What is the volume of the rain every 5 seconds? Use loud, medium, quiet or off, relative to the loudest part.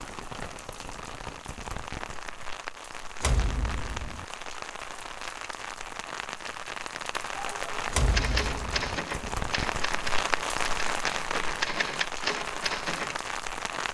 medium, loud, loud.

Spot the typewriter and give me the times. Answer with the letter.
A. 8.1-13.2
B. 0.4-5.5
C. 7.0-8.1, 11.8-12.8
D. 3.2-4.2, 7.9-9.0
A.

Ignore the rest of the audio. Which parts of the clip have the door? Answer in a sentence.
The door can be heard from 3.2 to 4.2 s and from 7.9 to 9.0 s.